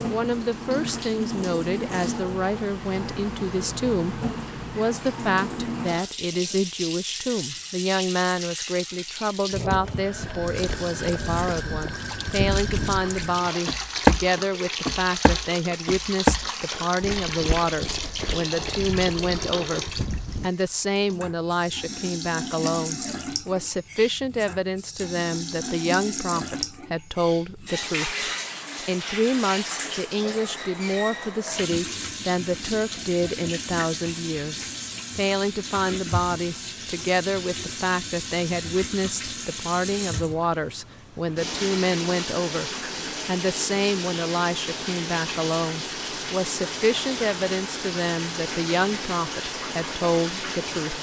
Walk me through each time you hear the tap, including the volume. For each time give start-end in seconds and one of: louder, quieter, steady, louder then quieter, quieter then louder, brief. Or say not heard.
0.0-50.9 steady.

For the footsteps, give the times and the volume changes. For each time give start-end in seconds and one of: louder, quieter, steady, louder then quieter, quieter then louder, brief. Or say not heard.
10.2-20.5 louder then quieter.